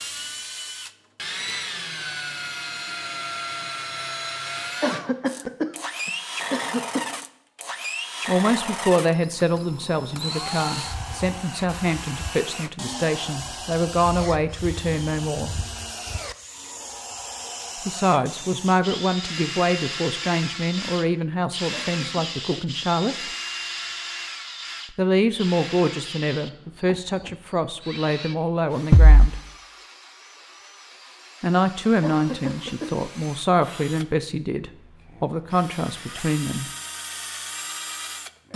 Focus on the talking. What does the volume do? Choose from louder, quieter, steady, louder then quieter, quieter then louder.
steady.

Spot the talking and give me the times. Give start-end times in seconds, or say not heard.
8.2-15.6, 17.9-23.2, 24.9-29.4, 31.4-36.7.